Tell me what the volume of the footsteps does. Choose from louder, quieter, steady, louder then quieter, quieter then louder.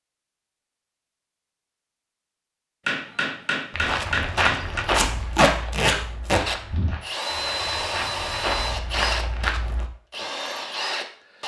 quieter then louder.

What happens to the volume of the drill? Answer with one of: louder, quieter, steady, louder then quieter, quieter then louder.
quieter then louder.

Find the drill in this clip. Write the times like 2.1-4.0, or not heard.
6.5-11.4.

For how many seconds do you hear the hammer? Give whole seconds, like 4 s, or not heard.
2 s.